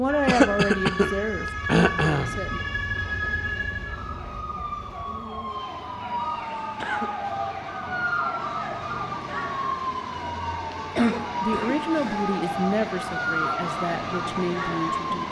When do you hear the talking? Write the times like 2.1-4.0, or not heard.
0.0-2.6, 11.4-15.2.